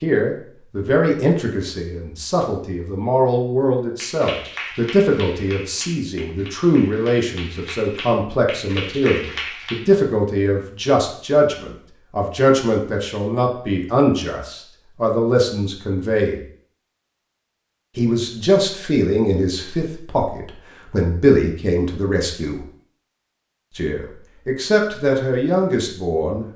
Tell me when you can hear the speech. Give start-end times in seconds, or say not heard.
0.0-16.4, 17.9-22.6, 23.8-26.4.